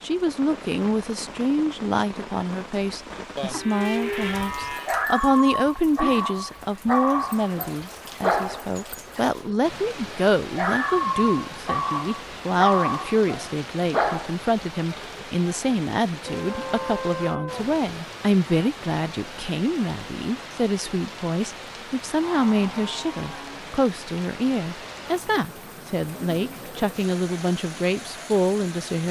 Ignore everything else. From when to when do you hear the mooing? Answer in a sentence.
The mooing can be heard from 3.4 to 4.9 s, from 16.2 to 17.9 s and from 22.0 to 23.6 s.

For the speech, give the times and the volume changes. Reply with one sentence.
The speech can be heard from 0.0 to 29.0 s, at a steady volume.